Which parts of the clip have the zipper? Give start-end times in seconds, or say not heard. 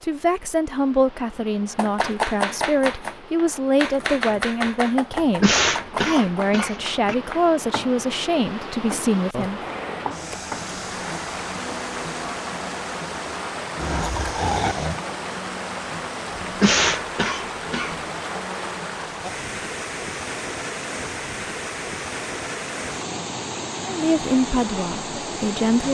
not heard.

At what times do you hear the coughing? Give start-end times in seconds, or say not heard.
5.2-7.2, 16.6-18.0.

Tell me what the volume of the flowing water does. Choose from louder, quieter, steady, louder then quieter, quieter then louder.
louder.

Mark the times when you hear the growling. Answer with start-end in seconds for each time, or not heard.
9.4-10.2, 13.8-15.0.